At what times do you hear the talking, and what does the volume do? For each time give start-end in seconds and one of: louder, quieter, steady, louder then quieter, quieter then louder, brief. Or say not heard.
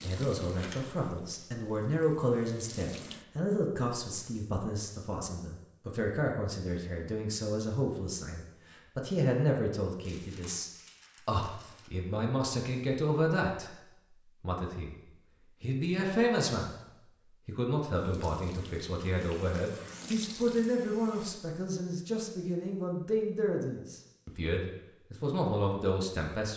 0.0-26.5 steady.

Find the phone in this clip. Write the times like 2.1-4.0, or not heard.
not heard.